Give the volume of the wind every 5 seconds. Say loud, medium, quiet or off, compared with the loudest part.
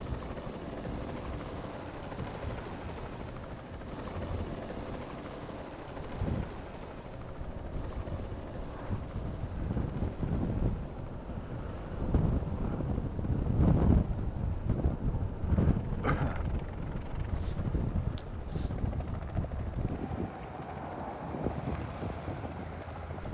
quiet, medium, loud, loud, medium.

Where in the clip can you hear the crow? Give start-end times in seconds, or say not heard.
not heard.